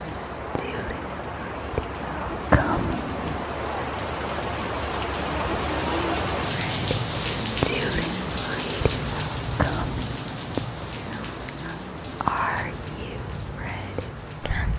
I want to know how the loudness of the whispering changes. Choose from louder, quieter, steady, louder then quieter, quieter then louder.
louder then quieter.